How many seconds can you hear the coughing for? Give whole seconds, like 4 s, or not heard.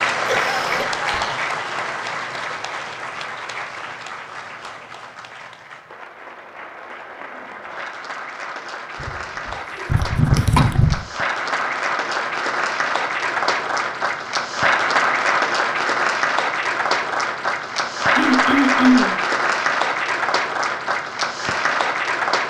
4 s.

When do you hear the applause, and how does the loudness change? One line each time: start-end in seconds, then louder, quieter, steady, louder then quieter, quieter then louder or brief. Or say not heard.
0.0-22.4 quieter then louder.